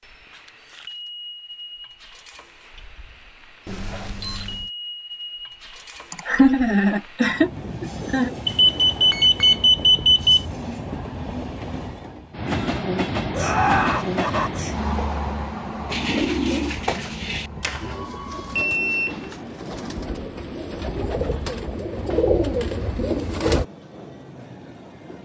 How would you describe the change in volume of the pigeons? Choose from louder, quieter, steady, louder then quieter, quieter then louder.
quieter then louder.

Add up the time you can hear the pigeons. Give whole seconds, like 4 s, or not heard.
8 s.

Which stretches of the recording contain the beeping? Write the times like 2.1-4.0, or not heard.
3.6-4.7, 8.4-10.4, 17.6-19.1.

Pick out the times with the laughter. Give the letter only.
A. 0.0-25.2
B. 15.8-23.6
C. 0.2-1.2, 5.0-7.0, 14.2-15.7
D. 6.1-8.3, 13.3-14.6
D.